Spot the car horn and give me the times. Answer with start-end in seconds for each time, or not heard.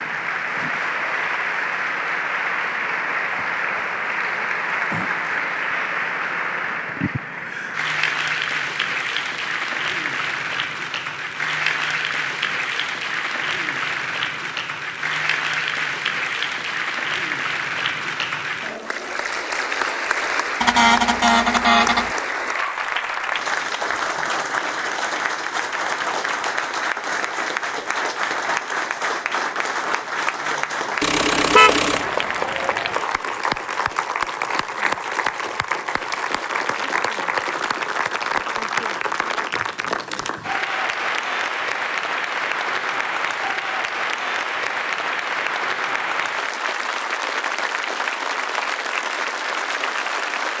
20.6-22.1, 31.0-32.0.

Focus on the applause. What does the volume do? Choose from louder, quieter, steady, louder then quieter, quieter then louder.
steady.